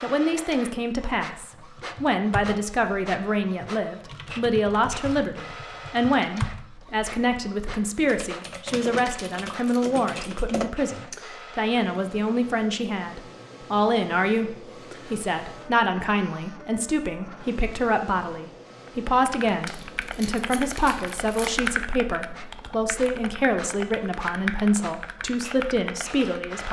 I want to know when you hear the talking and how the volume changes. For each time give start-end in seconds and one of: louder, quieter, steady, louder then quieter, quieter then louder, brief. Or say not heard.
0.0-26.6 steady.